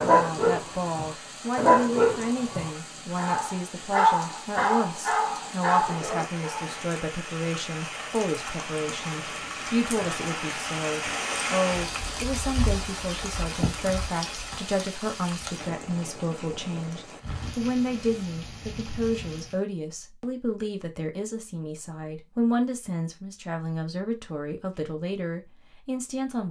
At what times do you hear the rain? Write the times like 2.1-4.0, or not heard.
0.0-19.6.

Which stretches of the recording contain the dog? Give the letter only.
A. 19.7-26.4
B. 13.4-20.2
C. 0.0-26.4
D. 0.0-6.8
D.